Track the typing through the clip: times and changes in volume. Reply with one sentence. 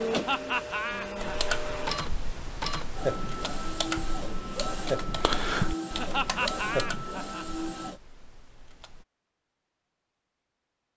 The typing can be heard from 1.1 to 9.1 s, getting louder then quieter.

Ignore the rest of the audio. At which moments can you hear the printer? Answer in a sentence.
The printer can be heard from 0.0 to 8.0 s.